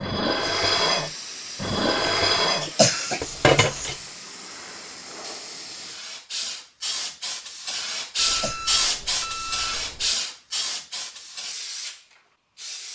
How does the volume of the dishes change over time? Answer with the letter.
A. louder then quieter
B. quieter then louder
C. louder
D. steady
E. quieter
B.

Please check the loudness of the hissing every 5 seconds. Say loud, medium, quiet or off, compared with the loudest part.
medium, loud, loud.